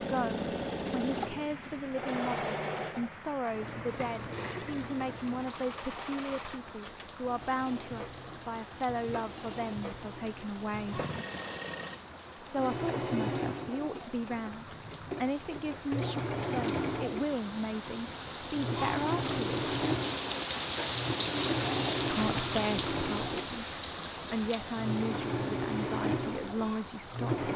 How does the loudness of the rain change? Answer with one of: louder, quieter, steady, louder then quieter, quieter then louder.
louder.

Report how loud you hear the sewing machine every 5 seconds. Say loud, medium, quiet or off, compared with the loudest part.
loud, medium, medium, loud, loud, loud.